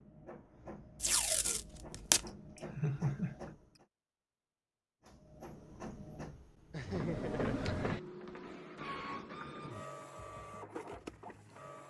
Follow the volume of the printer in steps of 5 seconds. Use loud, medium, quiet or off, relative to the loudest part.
medium, loud, medium.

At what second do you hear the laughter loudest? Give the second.
3 s.